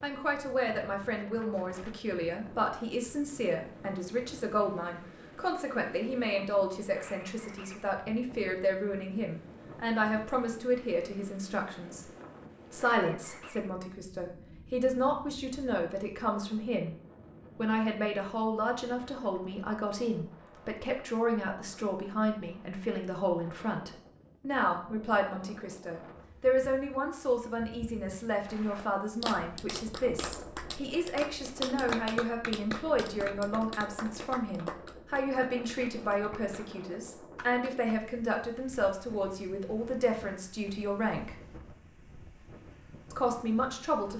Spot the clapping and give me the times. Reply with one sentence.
The clapping can be heard from 28.4 to 37.9 s.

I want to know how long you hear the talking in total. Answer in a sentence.
The talking can be heard for 41 seconds in total.